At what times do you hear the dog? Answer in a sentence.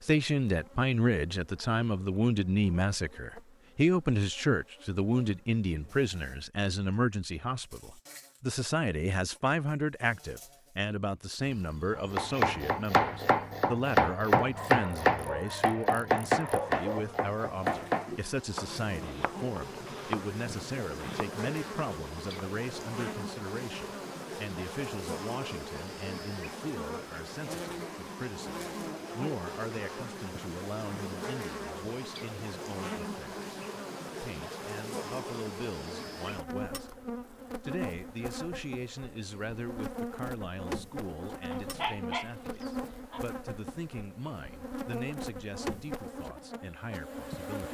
You can hear the dog from 14.4 to 17.1 s and from 41.5 to 43.2 s.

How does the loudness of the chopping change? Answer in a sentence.
The loudness of the chopping goes down.